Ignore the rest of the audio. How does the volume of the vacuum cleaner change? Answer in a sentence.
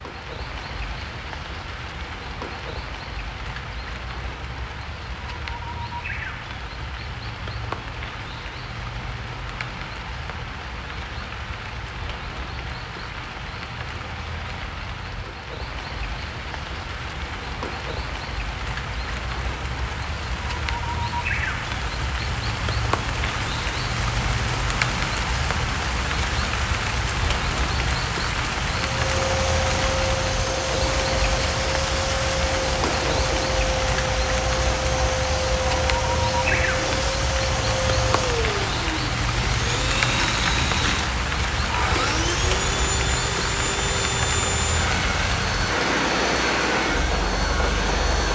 The loudness of the vacuum cleaner stays about the same.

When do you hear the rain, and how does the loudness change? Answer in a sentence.
You can hear the rain from 0.0 to 48.3 s, getting louder.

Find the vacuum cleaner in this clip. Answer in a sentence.
The vacuum cleaner can be heard from 28.9 to 48.3 s.